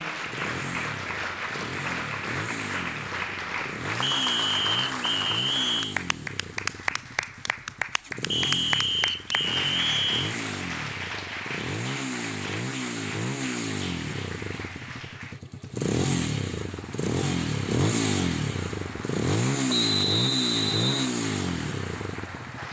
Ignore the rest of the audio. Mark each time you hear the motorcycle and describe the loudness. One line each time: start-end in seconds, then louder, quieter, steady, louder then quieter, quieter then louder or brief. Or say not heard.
0.1-22.6 louder.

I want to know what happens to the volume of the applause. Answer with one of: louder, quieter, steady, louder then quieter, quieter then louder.
quieter.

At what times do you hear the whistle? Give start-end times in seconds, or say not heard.
4.0-6.0, 8.3-10.3, 19.6-21.1.